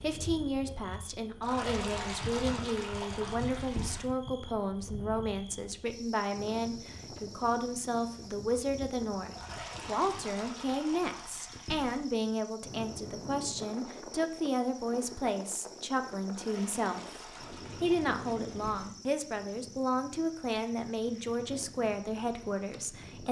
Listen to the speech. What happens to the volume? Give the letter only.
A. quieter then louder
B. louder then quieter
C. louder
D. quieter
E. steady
E.